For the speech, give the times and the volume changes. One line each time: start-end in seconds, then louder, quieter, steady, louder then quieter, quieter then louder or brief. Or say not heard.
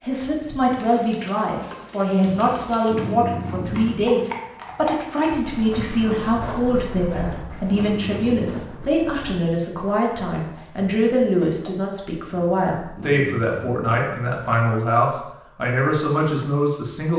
0.0-17.1 steady.